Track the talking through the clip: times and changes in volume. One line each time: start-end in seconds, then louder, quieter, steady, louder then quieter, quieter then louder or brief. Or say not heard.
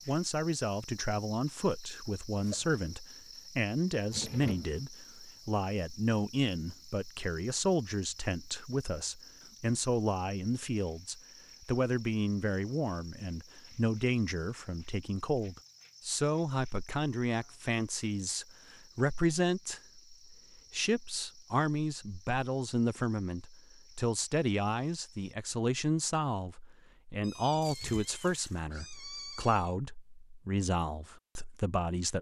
0.1-32.1 steady.